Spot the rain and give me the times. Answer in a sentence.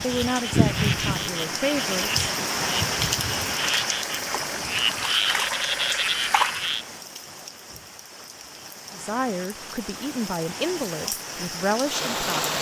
The rain can be heard from 0.0 to 12.5 s.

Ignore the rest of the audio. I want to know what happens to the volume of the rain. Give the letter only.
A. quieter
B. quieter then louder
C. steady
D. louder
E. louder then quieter
B.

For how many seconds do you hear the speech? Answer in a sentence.
You can hear the speech for 6 seconds altogether.